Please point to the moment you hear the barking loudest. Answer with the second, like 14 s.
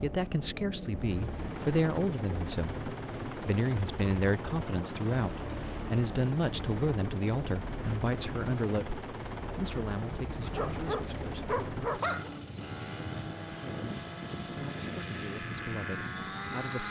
12 s.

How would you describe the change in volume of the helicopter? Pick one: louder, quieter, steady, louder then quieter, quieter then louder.
steady.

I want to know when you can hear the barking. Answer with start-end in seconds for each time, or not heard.
10.4-12.3.